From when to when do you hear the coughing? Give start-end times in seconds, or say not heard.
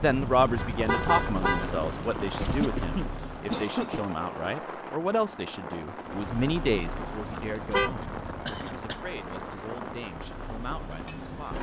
2.4-4.0, 7.5-9.0.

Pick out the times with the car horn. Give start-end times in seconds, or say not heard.
0.6-1.8, 7.2-8.0.